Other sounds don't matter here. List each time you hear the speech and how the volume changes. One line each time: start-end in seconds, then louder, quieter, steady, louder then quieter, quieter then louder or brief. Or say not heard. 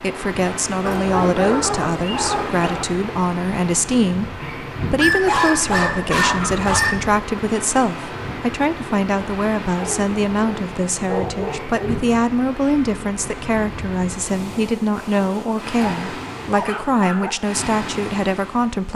0.0-18.9 steady.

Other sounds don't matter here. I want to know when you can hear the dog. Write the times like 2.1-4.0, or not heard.
0.8-2.9, 5.0-7.0, 9.8-12.1, 15.8-17.3.